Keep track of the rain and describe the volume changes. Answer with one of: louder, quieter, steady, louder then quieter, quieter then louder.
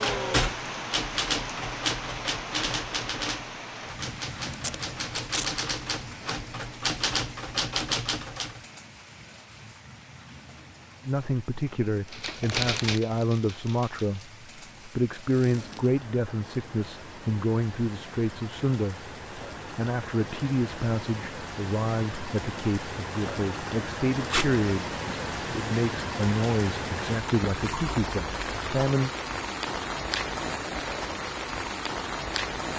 quieter then louder.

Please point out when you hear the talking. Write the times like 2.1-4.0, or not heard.
11.1-29.1.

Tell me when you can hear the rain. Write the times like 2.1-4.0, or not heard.
0.0-32.7.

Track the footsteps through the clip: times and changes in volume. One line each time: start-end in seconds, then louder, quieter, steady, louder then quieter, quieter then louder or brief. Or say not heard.
not heard.